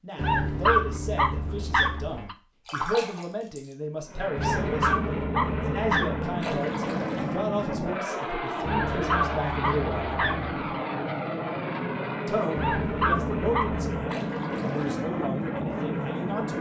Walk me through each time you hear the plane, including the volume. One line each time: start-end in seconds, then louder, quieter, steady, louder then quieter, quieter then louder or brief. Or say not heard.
4.0-16.5 steady.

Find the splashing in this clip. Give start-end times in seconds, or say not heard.
2.6-3.6, 6.4-7.3, 14.1-15.1.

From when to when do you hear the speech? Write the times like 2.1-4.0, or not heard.
0.0-10.1, 12.2-16.5.